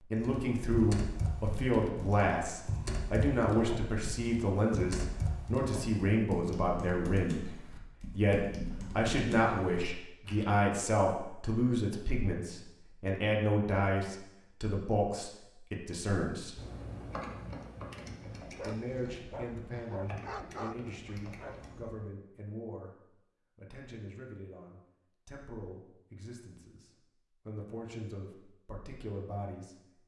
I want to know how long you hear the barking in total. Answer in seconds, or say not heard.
4 s.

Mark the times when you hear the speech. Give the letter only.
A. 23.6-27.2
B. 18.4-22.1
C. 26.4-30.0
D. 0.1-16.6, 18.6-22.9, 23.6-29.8
D.